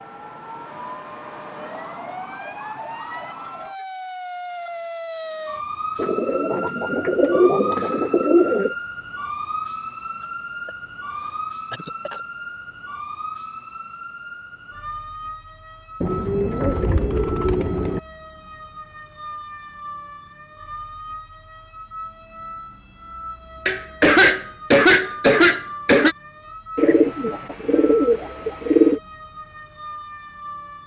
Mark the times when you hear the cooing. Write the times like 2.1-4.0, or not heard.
6.0-8.8, 16.0-18.0, 26.8-29.0.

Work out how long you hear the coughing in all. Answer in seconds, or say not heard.
3 s.